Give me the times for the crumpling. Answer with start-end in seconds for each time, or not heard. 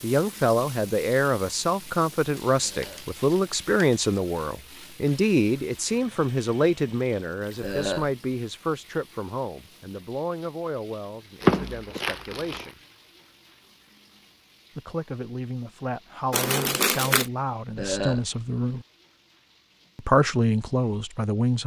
2.3-4.2, 11.4-12.8, 16.3-17.2.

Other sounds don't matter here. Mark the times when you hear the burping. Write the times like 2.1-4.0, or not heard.
2.6-3.1, 7.6-8.1, 17.8-18.2.